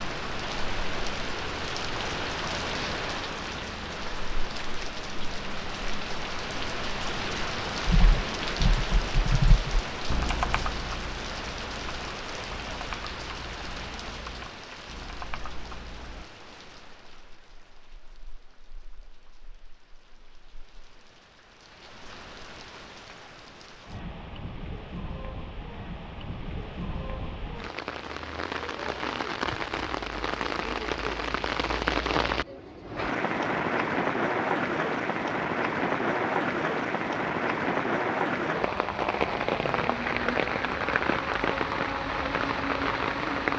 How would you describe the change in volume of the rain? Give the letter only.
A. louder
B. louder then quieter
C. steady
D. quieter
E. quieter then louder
E.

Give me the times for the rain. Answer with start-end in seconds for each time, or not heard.
0.0-43.5.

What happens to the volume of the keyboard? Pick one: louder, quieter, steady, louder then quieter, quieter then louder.
quieter.